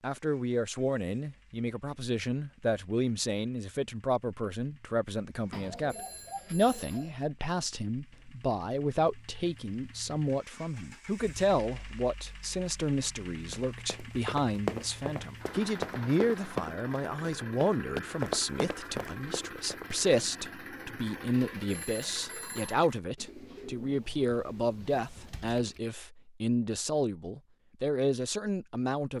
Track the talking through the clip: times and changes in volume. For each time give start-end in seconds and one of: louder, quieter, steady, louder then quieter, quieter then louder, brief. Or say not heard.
0.0-29.1 steady.